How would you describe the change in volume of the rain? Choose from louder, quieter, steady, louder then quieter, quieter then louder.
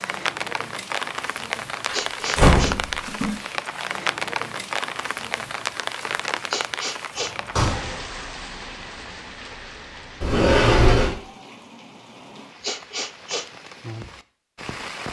quieter.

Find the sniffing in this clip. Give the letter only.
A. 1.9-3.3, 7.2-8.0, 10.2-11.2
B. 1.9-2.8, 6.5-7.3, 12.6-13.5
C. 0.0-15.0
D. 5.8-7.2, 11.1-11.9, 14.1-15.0
B.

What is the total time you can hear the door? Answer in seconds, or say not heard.
3 s.